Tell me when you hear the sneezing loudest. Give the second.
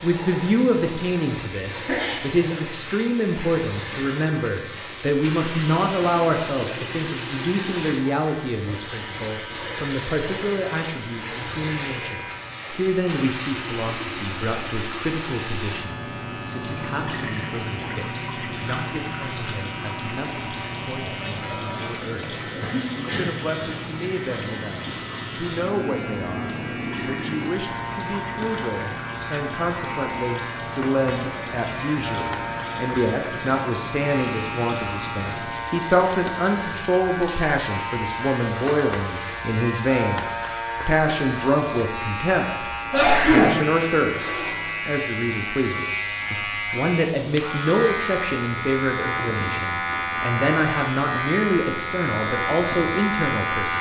43 s.